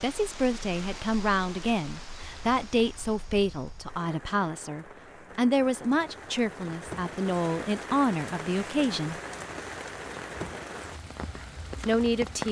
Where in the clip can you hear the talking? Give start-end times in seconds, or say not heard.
0.0-9.2, 11.8-12.4.